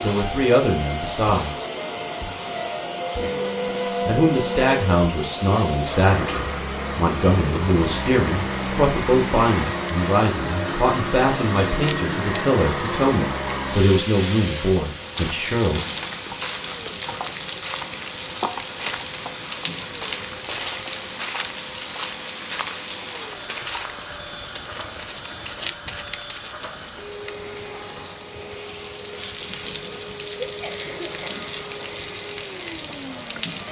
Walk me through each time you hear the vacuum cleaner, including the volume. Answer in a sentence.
The vacuum cleaner can be heard from 0.0 to 33.6 s, getting quieter.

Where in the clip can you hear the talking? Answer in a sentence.
The talking can be heard from 0.0 to 1.6 s and from 4.0 to 15.8 s.